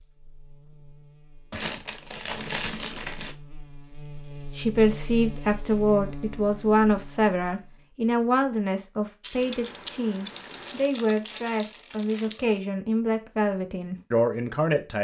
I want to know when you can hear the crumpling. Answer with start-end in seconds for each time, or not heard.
1.5-3.4, 10.2-12.6.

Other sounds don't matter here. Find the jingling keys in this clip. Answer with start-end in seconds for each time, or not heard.
9.2-10.9.